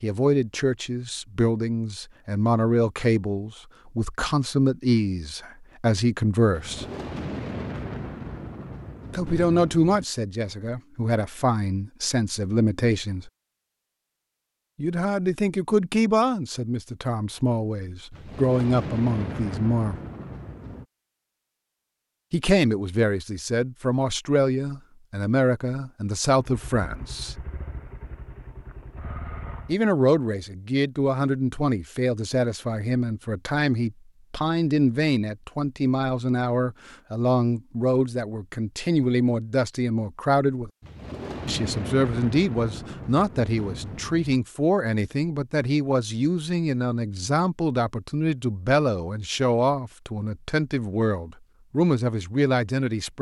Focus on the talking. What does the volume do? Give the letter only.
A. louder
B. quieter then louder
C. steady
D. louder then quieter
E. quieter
C.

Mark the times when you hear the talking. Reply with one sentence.
The talking can be heard from 0.0 to 6.8 s, from 9.1 to 13.3 s, from 14.8 to 20.0 s, from 22.3 to 27.4 s, from 29.6 to 40.7 s and from 41.5 to 53.1 s.